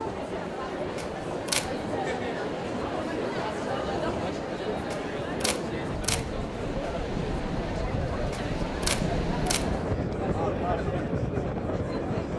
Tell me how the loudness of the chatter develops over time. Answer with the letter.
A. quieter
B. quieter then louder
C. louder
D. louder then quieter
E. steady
E.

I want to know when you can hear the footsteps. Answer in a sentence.
The footsteps can't be heard in this clip.